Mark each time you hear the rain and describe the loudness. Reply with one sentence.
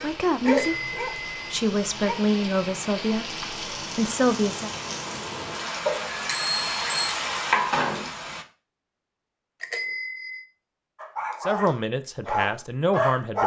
You can hear the rain from 0.0 to 8.4 s, getting louder.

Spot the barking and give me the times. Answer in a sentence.
You can hear the barking from 0.0 to 2.2 s and from 10.9 to 13.4 s.